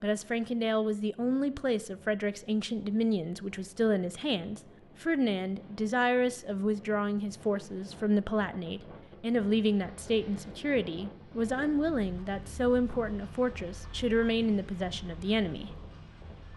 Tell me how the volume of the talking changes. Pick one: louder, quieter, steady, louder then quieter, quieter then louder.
steady.